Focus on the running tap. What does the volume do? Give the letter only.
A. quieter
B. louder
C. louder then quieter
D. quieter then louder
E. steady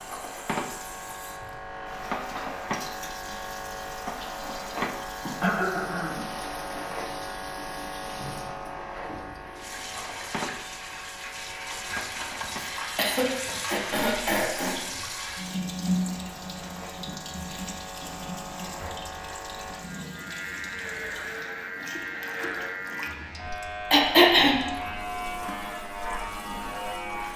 C.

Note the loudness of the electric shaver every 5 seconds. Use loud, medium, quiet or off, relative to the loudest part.
loud, loud, medium, medium, loud, loud.